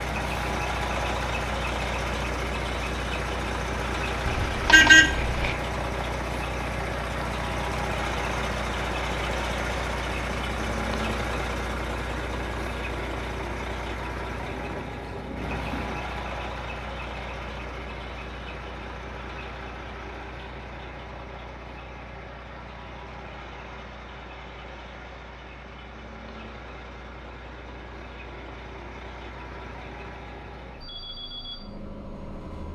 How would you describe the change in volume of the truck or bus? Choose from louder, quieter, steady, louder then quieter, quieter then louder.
quieter.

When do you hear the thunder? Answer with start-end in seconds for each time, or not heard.
14.4-16.2.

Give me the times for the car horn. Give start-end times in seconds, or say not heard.
4.2-5.5.